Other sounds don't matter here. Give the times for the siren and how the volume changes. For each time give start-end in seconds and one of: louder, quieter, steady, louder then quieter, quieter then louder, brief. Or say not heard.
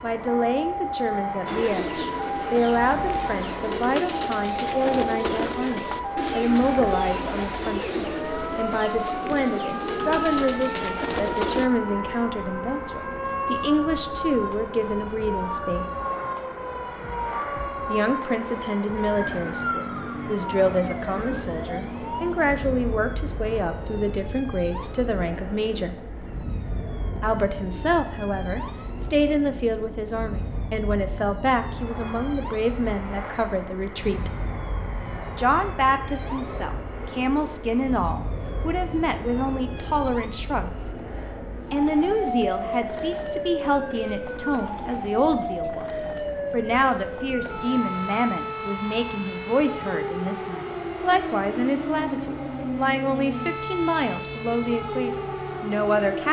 0.0-56.2 quieter then louder.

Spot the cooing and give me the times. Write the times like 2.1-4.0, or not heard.
1.4-11.7.